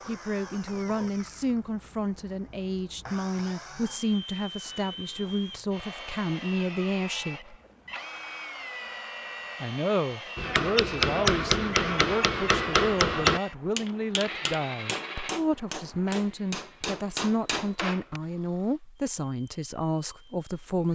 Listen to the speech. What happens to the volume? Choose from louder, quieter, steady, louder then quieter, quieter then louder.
steady.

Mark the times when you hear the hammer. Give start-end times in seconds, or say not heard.
10.3-18.2.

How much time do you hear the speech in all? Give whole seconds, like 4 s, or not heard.
19 s.